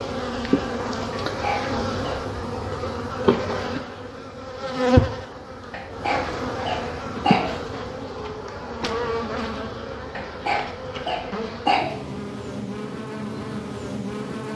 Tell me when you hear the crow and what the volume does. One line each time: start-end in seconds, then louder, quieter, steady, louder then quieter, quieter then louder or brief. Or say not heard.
not heard.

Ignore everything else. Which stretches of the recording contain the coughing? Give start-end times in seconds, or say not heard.
1.1-2.2, 5.7-7.5, 10.2-11.9.